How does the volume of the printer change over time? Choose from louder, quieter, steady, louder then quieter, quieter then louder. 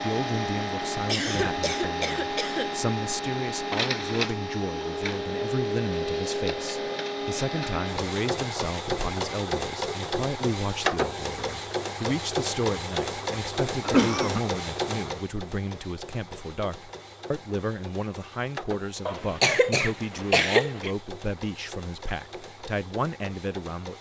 quieter.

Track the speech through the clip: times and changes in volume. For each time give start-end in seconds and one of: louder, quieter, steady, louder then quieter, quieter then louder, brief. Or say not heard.
0.0-23.9 steady.